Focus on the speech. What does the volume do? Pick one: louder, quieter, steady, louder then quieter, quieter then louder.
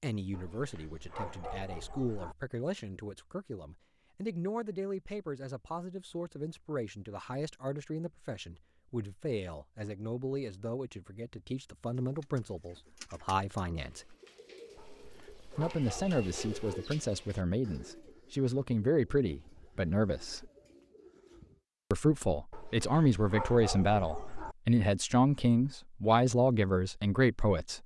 louder.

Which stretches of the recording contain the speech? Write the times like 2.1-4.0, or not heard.
0.0-14.2, 15.6-20.5, 21.9-27.8.